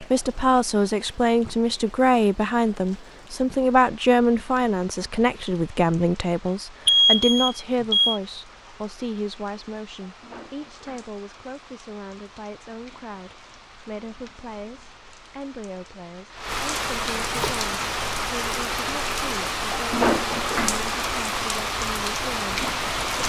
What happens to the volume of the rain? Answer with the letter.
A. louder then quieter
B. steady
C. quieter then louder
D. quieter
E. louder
E.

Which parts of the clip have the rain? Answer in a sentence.
The rain can be heard from 0.0 to 23.2 s.